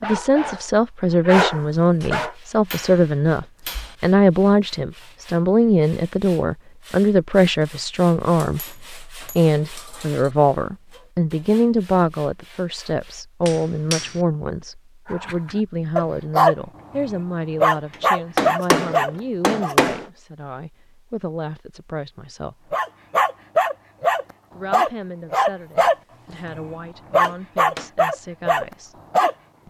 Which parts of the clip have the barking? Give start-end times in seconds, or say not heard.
0.0-2.3, 15.1-19.8, 22.7-29.6.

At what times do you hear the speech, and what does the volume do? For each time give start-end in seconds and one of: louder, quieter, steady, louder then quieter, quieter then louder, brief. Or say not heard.
0.0-22.8 quieter
24.5-29.0 quieter then louder.